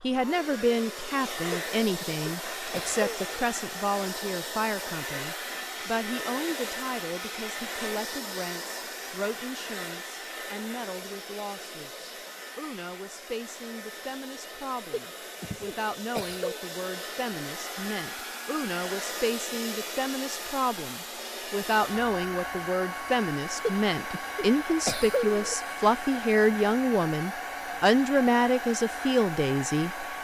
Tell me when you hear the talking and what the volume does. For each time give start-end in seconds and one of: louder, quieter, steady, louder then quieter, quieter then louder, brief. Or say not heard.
0.0-30.1 quieter then louder.